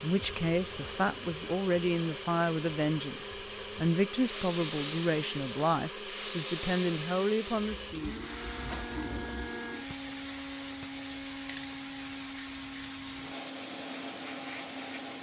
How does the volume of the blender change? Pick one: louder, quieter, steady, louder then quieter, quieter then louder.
steady.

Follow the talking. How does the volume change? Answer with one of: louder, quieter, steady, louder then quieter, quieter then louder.
steady.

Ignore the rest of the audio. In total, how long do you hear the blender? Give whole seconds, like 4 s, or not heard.
15 s.